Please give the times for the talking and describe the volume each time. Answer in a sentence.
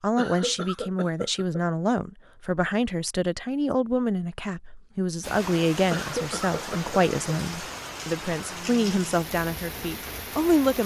You can hear the talking from 0.0 to 10.8 s, at a steady volume.